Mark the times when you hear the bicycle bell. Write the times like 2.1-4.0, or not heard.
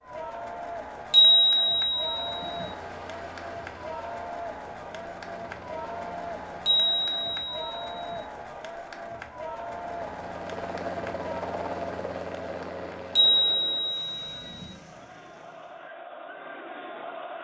1.1-2.7, 6.7-8.2, 13.2-14.7.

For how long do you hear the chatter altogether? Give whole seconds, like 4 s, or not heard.
17 s.